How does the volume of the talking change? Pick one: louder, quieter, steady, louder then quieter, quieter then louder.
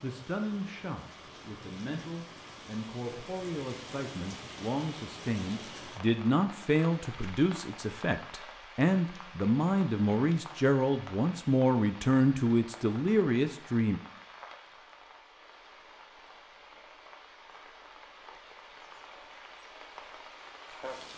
louder.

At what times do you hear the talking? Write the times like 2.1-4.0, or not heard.
0.0-14.0.